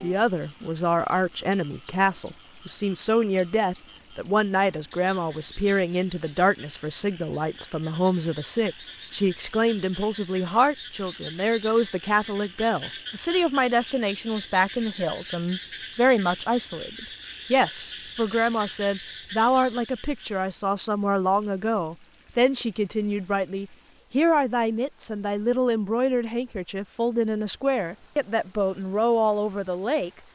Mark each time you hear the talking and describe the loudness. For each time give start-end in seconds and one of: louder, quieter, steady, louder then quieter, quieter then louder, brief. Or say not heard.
0.0-30.1 steady.